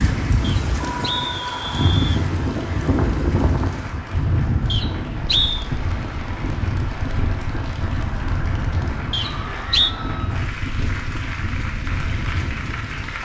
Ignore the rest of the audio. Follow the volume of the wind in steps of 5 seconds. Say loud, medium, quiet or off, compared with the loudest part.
loud, medium, medium.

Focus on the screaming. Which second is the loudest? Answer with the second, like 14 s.
1 s.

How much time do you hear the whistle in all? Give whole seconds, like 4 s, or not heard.
4 s.